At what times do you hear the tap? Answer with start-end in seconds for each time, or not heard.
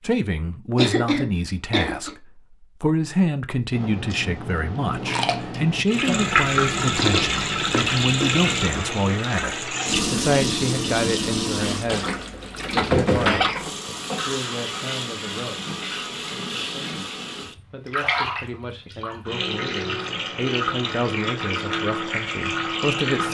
5.8-23.2.